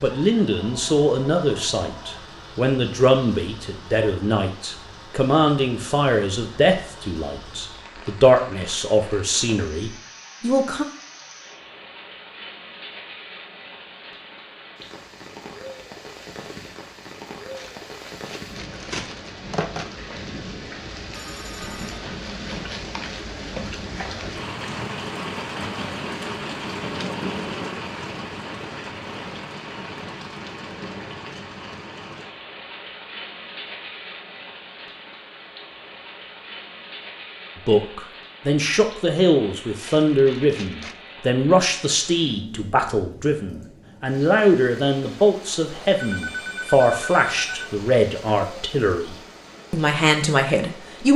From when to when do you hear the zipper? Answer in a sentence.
The zipper can't be heard in this clip.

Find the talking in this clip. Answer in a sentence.
The talking can be heard from 0.0 to 10.8 s and from 37.5 to 51.1 s.